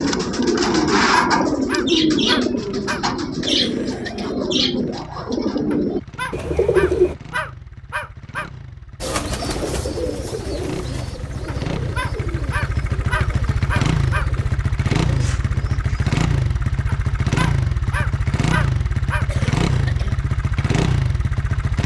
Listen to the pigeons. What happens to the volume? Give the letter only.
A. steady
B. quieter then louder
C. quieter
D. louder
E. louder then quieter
C.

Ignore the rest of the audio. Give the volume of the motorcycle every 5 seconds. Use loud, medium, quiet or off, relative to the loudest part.
quiet, quiet, loud, loud, loud.